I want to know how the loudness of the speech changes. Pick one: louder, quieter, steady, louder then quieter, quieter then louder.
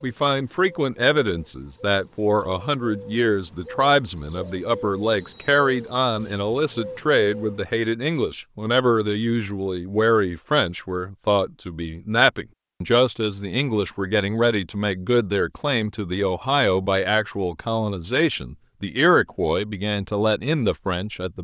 steady.